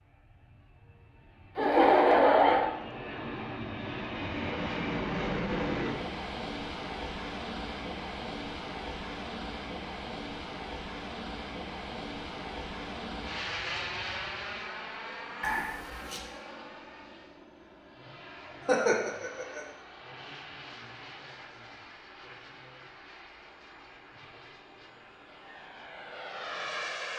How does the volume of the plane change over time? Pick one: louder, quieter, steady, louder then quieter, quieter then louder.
quieter.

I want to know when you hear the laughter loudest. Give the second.
2 s.